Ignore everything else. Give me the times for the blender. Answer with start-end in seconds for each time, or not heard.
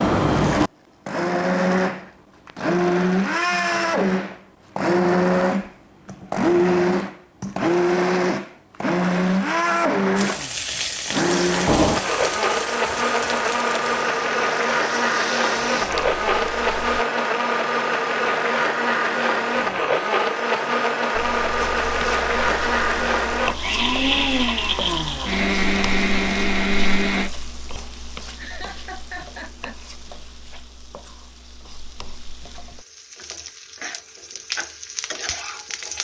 0.0-27.3.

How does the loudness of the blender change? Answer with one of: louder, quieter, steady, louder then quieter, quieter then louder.
steady.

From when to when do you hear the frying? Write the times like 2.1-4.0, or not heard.
10.2-17.1, 21.1-35.9.